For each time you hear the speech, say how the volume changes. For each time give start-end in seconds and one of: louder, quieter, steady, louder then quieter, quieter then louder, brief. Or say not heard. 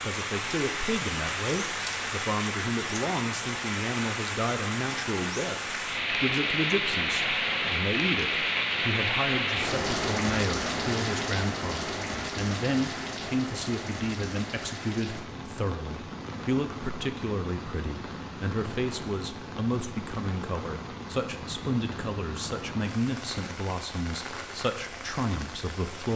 0.0-26.1 steady.